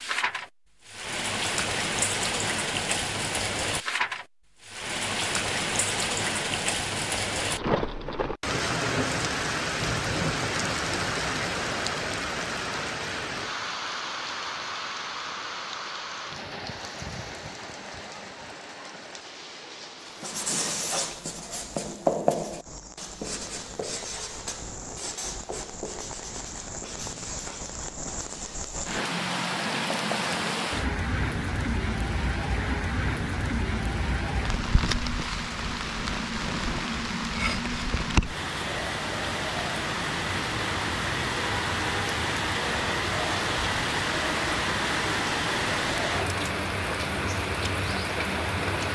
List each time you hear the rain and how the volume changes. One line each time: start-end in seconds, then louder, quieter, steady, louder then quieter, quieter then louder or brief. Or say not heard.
0.0-48.9 quieter then louder.